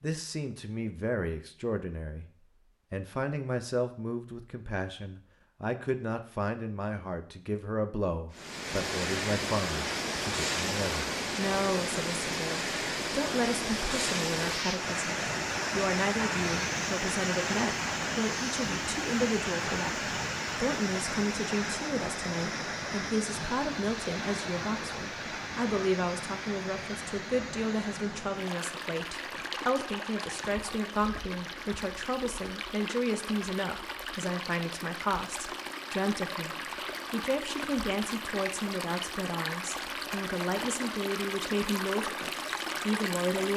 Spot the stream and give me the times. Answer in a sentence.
You can hear the stream from 8.3 to 43.5 s.